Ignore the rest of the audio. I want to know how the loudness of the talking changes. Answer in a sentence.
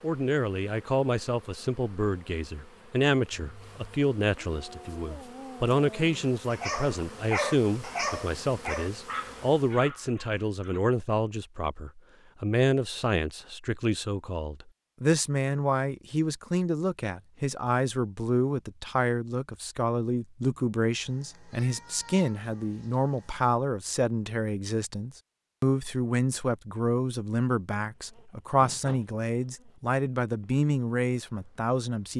The volume of the talking stays about the same.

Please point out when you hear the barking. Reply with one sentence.
The barking can be heard from 3.3 to 10.8 s.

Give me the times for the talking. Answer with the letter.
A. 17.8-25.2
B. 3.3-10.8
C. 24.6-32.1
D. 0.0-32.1
D.